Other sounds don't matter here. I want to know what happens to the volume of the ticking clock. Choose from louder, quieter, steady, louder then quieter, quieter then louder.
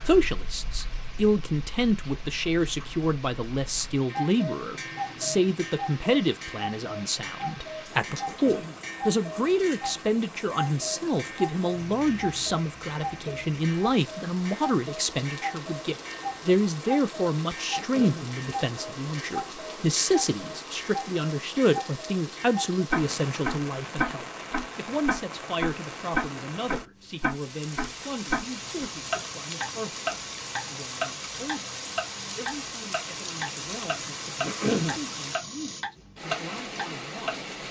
louder.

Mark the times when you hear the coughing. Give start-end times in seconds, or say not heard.
8.2-8.8, 17.8-18.3, 34.4-35.0.